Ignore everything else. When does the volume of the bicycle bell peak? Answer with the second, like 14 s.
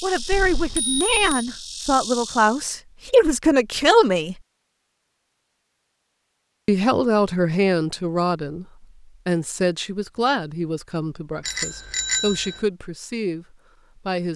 12 s.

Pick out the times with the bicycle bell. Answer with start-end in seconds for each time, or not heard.
0.3-1.4, 11.4-12.7.